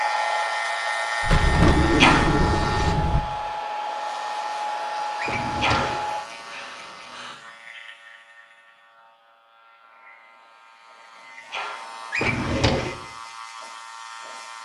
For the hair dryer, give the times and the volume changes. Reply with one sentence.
You can hear the hair dryer from 0.0 to 6.2 s, at a steady volume.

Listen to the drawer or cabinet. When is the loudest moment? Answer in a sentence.
The loudest moment of the drawer or cabinet is at 2 seconds.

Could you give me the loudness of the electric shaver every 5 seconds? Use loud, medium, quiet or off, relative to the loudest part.
loud, quiet, medium.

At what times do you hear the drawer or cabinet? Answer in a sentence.
The drawer or cabinet can be heard from 1.2 to 3.2 s, from 5.2 to 6.0 s and from 12.1 to 12.9 s.